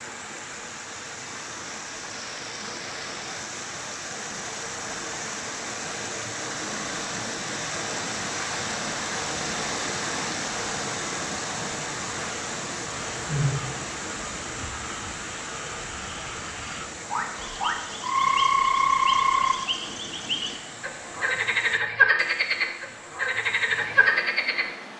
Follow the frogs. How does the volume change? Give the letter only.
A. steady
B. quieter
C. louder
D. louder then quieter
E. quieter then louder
C.